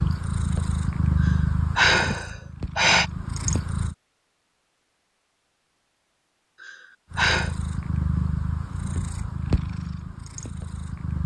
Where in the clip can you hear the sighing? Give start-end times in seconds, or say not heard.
1.2-3.0, 6.6-7.5.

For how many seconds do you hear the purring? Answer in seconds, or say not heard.
8 s.